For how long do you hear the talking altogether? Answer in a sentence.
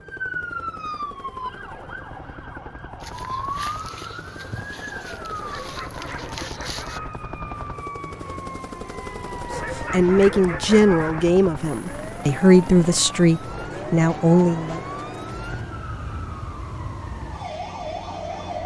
You can hear the talking for 5 seconds altogether.